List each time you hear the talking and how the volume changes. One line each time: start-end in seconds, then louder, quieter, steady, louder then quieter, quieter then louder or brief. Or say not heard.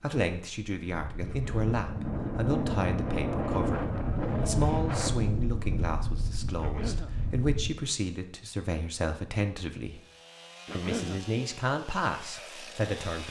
0.0-10.0 steady
10.7-13.2 brief.